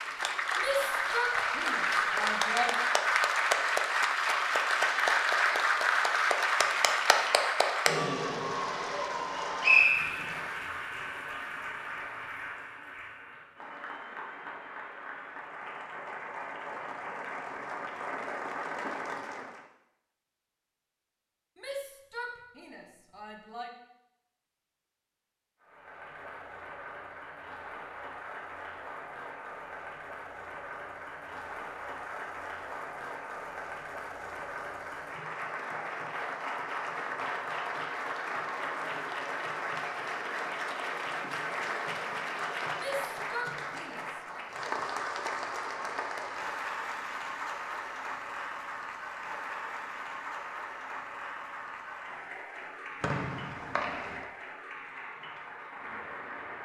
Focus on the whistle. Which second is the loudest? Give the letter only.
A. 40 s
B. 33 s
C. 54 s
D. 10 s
D.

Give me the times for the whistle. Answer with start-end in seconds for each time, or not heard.
9.2-10.4, 53.0-54.2.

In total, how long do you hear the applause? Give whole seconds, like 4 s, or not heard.
51 s.